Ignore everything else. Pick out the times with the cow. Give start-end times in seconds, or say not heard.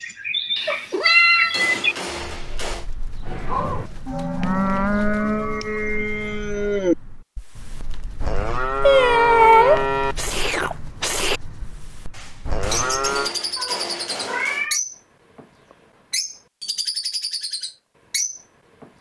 3.2-13.3.